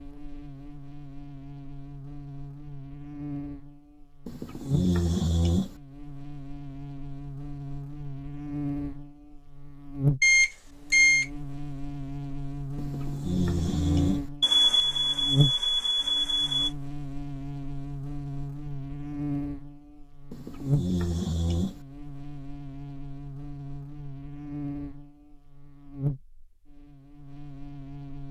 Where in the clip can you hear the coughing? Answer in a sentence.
You can't hear the coughing here.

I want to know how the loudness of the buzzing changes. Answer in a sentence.
The loudness of the buzzing goes up, then down.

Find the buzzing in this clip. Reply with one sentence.
The buzzing can be heard from 0.0 to 28.2 s.